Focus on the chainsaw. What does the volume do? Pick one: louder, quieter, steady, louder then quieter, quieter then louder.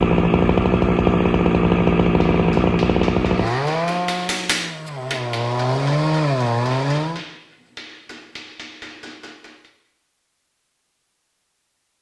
quieter then louder.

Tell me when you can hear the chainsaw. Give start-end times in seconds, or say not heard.
0.0-7.2.